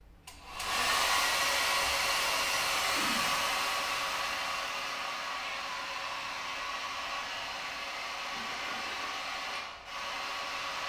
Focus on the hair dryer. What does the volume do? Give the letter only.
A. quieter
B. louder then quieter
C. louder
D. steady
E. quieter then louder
A.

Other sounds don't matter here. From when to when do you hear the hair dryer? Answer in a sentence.
The hair dryer can be heard from 0.0 to 10.8 s.